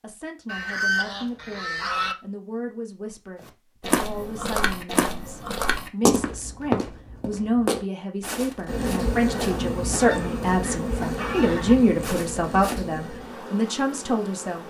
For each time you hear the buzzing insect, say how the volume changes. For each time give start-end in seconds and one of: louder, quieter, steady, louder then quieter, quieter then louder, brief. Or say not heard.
8.7-14.6 quieter.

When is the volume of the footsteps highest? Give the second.
6 s.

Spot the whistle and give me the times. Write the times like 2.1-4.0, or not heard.
not heard.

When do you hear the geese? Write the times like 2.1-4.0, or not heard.
0.5-2.1, 9.9-11.8.